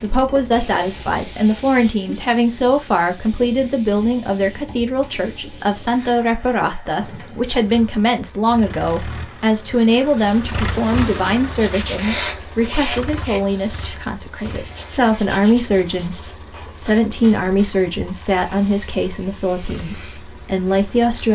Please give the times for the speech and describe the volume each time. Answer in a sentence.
The speech can be heard from 0.0 to 21.3 s, at a steady volume.